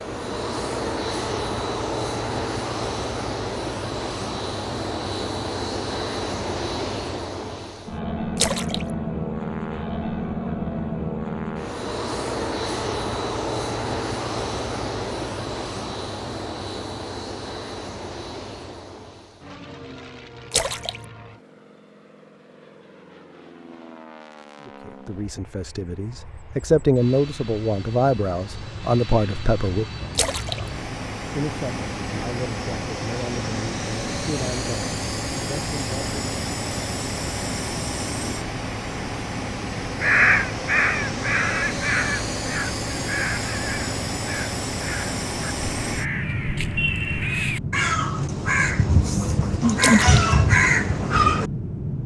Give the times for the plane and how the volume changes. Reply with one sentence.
The plane can be heard from 0.0 to 52.0 s, getting quieter then louder.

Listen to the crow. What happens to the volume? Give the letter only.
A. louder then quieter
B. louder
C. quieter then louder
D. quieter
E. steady
C.